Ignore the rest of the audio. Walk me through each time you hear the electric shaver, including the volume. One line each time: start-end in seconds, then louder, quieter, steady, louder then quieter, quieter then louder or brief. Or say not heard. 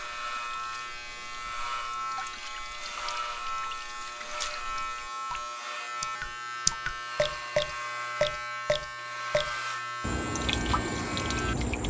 0.0-11.7 steady.